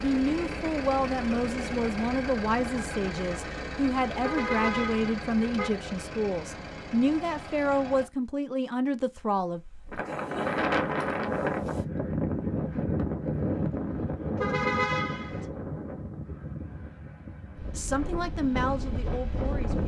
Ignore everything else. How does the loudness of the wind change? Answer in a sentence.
The loudness of the wind goes down.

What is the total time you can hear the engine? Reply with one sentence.
The engine can be heard for 8 seconds in total.